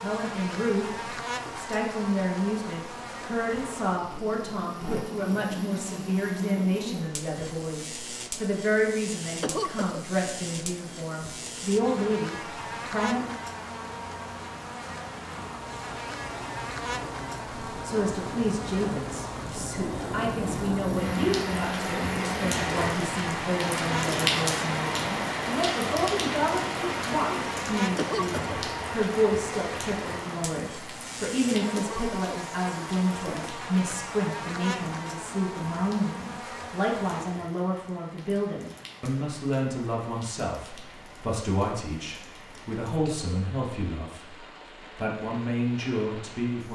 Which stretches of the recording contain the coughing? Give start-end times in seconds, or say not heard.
9.4-10.1, 27.9-28.6, 31.8-32.2.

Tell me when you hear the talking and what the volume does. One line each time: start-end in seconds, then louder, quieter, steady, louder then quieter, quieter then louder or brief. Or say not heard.
0.0-13.3 steady
17.8-44.4 steady
45.0-46.6 brief.